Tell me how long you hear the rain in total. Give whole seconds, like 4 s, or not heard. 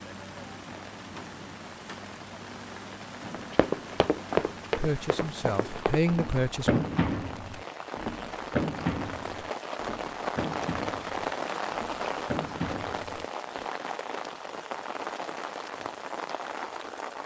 17 s.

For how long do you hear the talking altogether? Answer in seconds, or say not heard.
2 s.